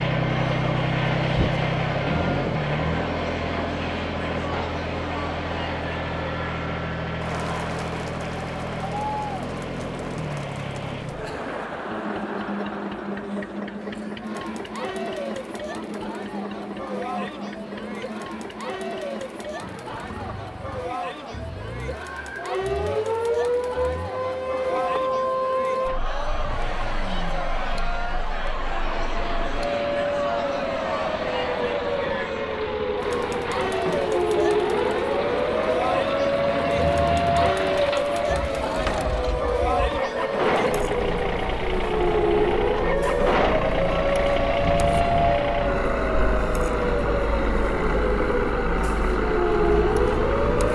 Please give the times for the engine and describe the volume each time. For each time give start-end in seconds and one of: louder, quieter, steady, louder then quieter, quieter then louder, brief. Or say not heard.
0.0-50.7 quieter then louder.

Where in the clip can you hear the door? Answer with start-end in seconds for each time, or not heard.
38.4-39.2.